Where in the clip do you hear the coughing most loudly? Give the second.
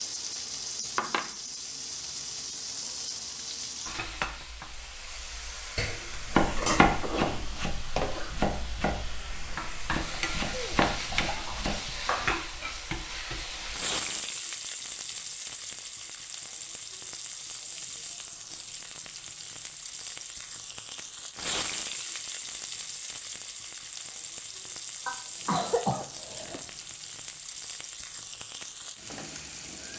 26 s.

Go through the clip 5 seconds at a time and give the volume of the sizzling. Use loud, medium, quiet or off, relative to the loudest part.
loud, loud, loud, medium, loud, medium.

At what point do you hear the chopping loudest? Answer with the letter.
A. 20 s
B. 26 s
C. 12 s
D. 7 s
D.